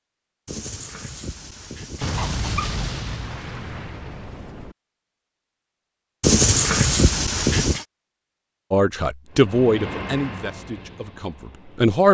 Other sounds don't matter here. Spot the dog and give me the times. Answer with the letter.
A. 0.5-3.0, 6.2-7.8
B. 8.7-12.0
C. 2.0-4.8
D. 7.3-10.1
A.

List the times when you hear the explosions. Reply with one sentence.
You can hear the explosions from 2.0 to 4.8 s.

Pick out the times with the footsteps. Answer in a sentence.
The footsteps can't be heard in this clip.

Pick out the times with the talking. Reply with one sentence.
You can hear the talking from 8.7 to 12.0 s.